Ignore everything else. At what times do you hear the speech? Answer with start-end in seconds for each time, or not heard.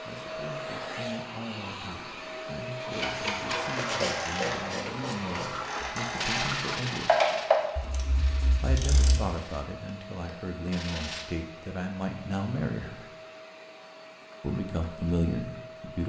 0.0-7.2, 8.6-13.1, 14.4-16.0.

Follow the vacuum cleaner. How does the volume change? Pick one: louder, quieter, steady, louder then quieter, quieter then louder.
quieter.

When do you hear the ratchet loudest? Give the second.
7 s.